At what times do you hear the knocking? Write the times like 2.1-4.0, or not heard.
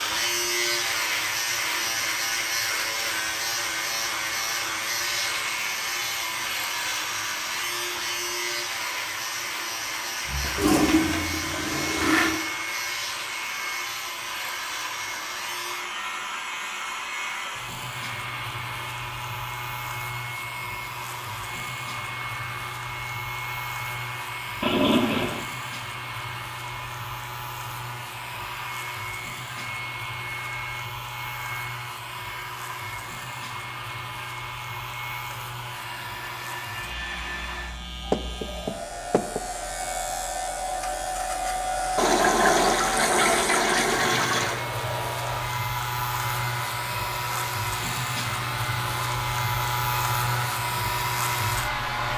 38.1-39.4.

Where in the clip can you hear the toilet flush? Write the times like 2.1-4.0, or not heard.
10.2-12.4, 24.6-25.4, 42.0-44.6.